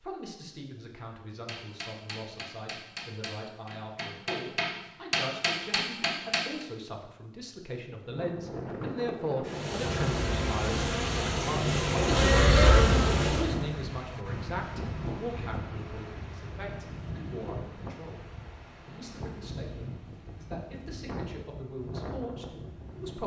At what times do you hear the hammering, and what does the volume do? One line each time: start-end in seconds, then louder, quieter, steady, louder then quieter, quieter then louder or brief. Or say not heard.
1.4-6.7 louder.